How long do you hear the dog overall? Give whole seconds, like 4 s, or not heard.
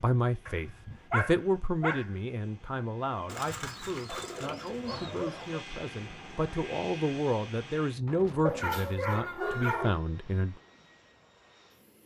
5 s.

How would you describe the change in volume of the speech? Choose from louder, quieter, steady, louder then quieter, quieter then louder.
quieter then louder.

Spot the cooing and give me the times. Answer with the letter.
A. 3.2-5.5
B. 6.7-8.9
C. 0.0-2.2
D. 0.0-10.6
A.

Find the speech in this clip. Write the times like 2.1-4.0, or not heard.
0.0-10.6.